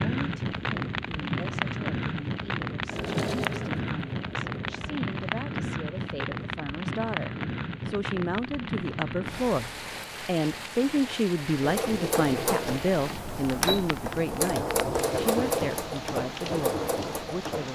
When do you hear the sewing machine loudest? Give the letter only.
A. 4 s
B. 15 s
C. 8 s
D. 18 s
B.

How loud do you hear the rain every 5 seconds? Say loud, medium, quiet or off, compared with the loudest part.
loud, loud, medium, medium.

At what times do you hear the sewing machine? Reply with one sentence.
The sewing machine can be heard from 2.9 to 5.0 s and from 11.6 to 17.7 s.